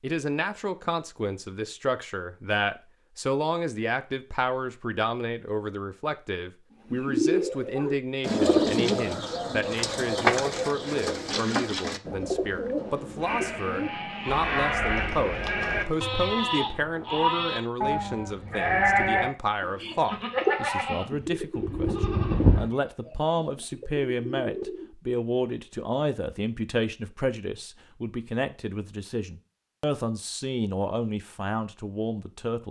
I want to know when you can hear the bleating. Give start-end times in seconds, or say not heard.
13.2-22.7.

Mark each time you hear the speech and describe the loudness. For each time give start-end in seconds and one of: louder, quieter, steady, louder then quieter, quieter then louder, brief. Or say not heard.
0.0-32.6 steady.